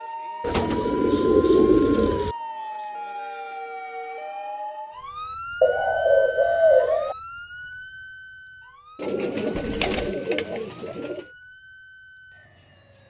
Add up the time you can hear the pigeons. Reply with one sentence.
The pigeons can be heard for 6 seconds in total.